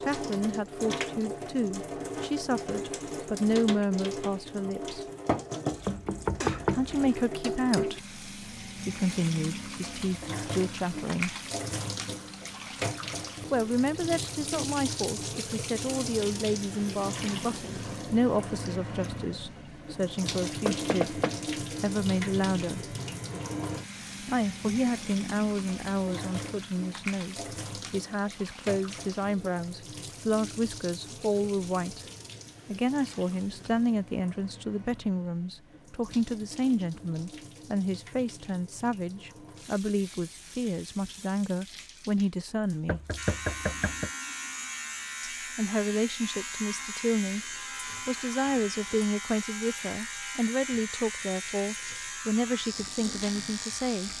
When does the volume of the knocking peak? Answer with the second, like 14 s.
7 s.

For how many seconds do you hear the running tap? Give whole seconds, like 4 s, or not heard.
54 s.